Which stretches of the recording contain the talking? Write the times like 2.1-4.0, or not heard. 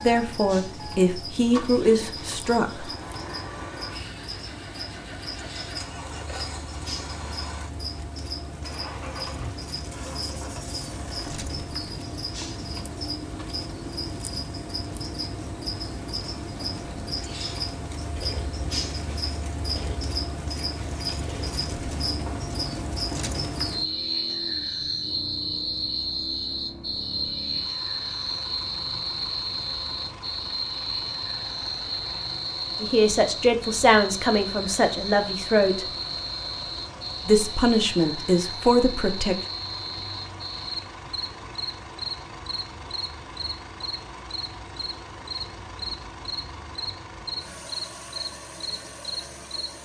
0.0-2.9, 32.8-35.9, 37.2-39.4.